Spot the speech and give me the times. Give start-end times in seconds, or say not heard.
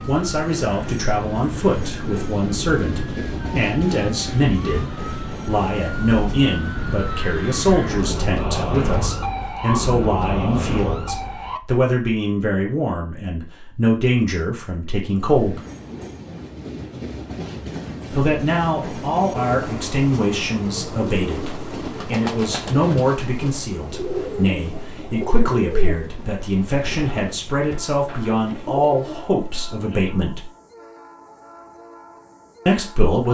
0.1-15.6, 18.1-30.4, 32.6-33.3.